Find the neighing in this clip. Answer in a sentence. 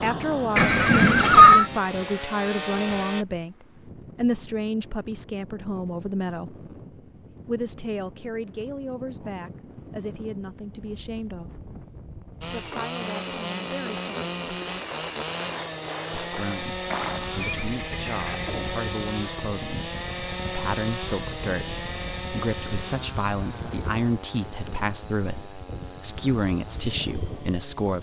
The neighing can be heard from 0.6 to 1.6 s and from 16.9 to 18.8 s.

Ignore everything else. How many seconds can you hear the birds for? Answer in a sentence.
The birds can't be heard in this clip.